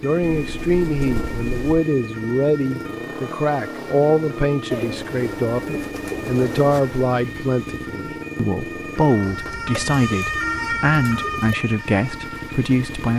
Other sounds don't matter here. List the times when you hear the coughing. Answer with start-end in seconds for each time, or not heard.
not heard.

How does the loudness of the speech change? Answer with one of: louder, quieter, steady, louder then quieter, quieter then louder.
steady.